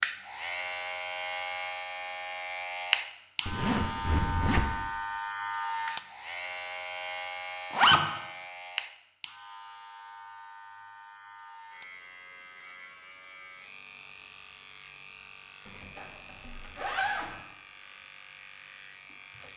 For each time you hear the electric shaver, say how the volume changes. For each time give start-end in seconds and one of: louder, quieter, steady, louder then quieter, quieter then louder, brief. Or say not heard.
0.0-19.5 quieter.